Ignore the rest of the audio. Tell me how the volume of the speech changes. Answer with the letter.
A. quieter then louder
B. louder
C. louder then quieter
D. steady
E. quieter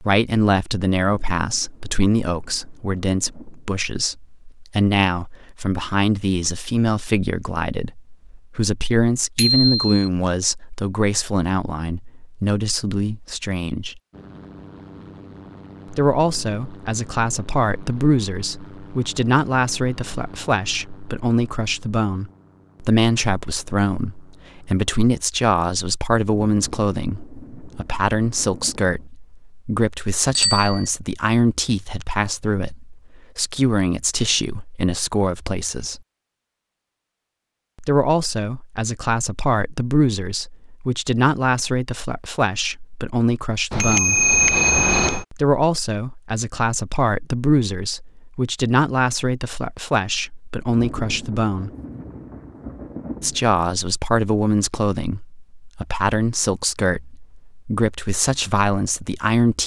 D.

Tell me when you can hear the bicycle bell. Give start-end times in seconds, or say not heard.
9.3-9.9, 30.4-30.9, 43.7-45.2.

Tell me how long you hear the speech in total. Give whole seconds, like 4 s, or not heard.
53 s.